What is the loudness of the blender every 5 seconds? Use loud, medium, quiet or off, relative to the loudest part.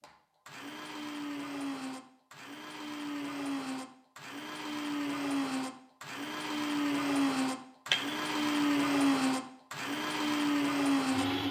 medium, loud, loud.